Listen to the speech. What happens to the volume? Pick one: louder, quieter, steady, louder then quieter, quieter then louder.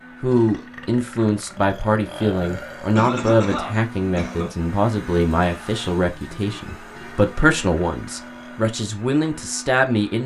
steady.